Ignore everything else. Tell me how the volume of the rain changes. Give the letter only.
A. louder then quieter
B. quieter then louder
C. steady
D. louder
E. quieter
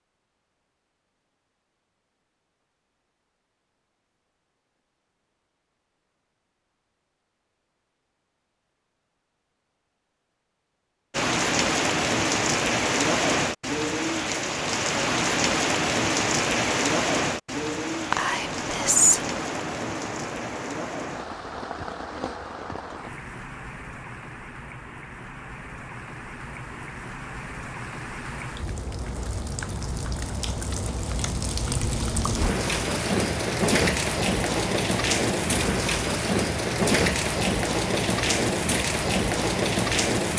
B.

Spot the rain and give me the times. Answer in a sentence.
You can hear the rain from 11.1 to 40.3 s.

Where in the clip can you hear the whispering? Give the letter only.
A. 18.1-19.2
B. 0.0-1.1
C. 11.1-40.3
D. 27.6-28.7
A.